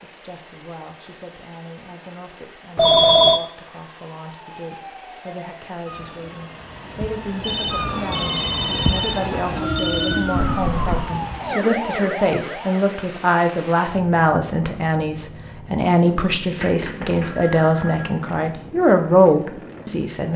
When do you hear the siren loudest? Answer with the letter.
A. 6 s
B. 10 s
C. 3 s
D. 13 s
B.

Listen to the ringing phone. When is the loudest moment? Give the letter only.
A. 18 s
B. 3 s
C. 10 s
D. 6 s
B.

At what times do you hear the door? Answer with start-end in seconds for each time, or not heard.
10.3-11.1.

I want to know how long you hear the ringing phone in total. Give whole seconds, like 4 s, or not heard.
5 s.